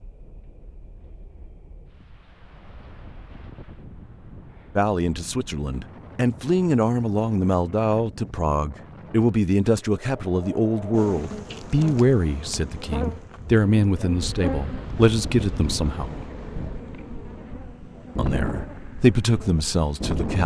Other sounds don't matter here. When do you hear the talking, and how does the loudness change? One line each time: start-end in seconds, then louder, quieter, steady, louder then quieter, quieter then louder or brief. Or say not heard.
4.8-16.2 steady
18.1-20.4 brief.